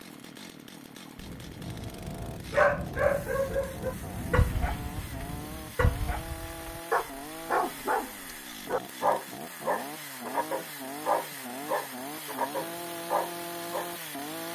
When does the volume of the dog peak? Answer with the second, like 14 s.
3 s.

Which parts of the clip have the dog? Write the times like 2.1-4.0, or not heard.
2.5-13.9.